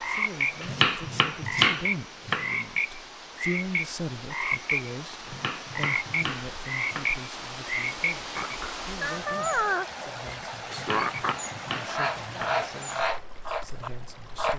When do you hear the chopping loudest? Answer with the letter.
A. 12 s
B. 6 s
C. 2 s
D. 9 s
C.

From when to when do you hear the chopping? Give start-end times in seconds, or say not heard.
0.6-2.5, 5.2-7.1, 10.7-12.6.